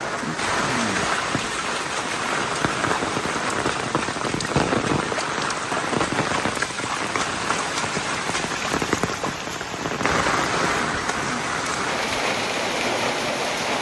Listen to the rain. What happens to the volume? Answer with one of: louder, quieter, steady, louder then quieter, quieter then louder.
steady.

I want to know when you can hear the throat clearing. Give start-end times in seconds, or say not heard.
0.2-1.1, 10.8-11.4.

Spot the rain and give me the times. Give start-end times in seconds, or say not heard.
0.0-13.7.